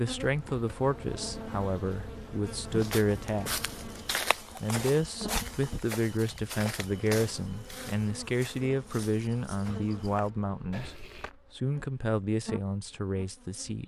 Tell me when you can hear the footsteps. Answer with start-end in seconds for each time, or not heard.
2.6-11.3.